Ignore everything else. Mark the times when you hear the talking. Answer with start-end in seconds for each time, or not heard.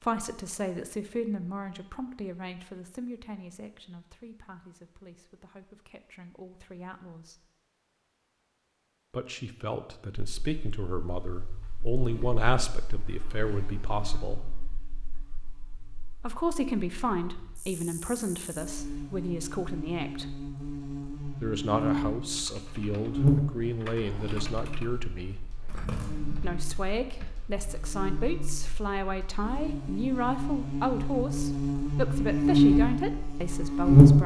0.0-7.4, 9.1-14.4, 16.2-20.3, 21.4-25.4, 26.4-34.2.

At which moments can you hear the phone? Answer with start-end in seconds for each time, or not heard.
25.6-26.6.